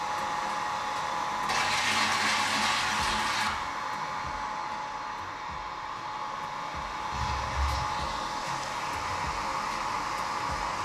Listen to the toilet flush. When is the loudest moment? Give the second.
2 s.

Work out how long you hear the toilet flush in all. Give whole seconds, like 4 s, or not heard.
3 s.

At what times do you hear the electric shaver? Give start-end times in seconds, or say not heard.
not heard.